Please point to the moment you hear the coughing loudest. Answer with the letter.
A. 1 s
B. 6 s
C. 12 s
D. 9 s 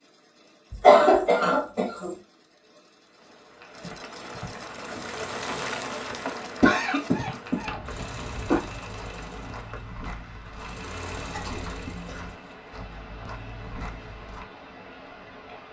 A.